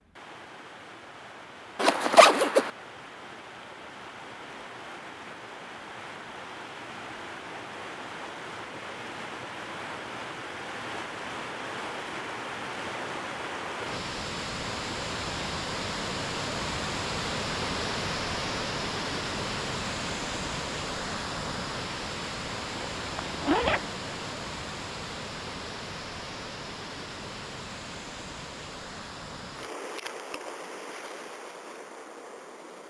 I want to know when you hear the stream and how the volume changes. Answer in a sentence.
The stream can be heard from 0.0 to 32.8 s, getting louder then quieter.